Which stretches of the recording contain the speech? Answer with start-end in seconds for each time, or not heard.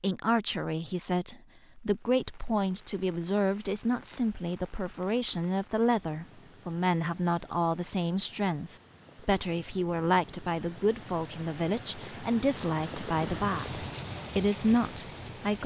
0.0-15.6.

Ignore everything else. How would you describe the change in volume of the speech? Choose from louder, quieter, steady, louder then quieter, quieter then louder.
steady.